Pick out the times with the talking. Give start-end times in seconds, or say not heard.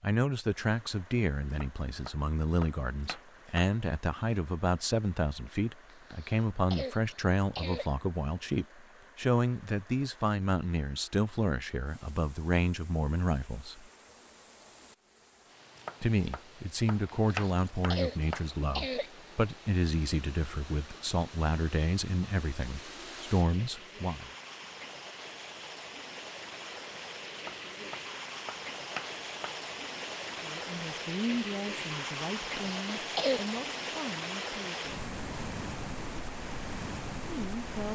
0.0-13.8, 16.0-24.3, 30.4-35.0, 37.2-37.9.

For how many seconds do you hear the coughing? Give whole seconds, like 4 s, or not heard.
5 s.